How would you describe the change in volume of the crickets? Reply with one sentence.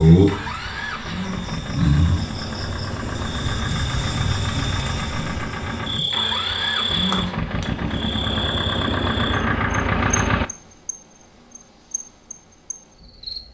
The volume of the crickets goes down.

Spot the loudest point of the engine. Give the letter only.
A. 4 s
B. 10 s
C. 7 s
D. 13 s
B.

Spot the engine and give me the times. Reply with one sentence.
The engine can be heard from 0.1 to 10.5 s.